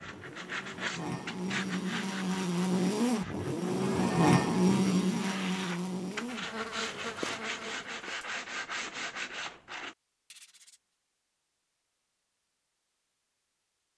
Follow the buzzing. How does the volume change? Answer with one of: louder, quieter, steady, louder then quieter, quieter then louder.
louder then quieter.